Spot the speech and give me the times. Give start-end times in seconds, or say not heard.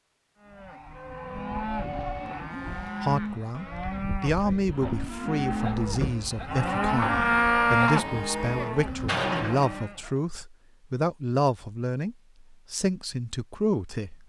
3.0-14.2.